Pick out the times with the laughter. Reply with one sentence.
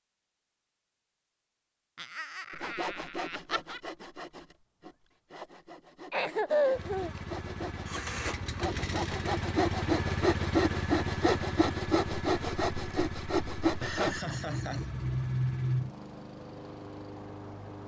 You can hear the laughter from 1.9 to 3.8 s, from 6.1 to 7.1 s and from 13.8 to 15.9 s.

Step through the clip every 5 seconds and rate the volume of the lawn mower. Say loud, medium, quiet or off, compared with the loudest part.
off, loud, loud, medium.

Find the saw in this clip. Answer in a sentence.
The saw can be heard from 2.5 to 14.2 s.